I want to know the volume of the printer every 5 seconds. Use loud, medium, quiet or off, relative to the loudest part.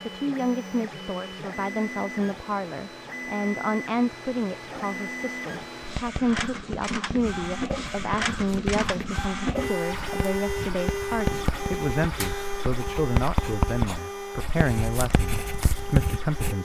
medium, loud, loud, medium.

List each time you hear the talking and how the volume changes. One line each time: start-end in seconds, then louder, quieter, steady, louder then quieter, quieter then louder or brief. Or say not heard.
0.1-16.5 steady.